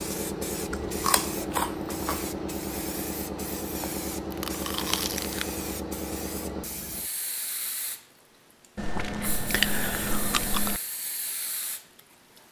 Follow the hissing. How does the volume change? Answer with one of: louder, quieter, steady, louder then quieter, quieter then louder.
quieter.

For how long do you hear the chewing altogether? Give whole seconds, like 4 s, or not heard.
5 s.